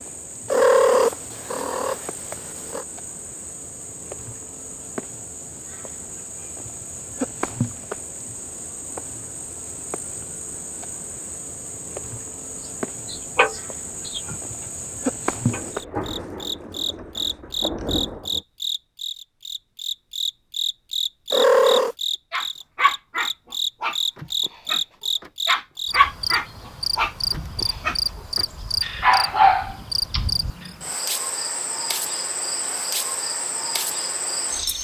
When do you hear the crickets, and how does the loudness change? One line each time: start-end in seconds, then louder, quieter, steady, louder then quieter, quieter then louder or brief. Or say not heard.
0.0-34.7 louder.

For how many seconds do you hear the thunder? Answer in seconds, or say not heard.
3 s.